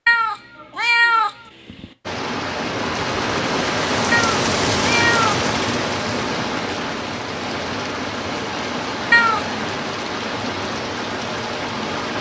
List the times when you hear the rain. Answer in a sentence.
The rain can be heard from 2.0 to 12.1 s.